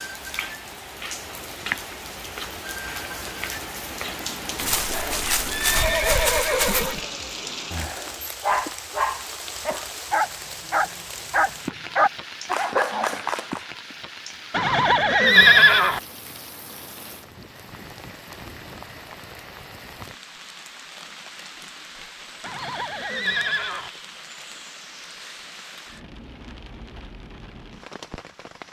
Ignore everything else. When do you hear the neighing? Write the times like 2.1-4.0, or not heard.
4.5-7.0, 14.5-16.0, 22.4-23.9.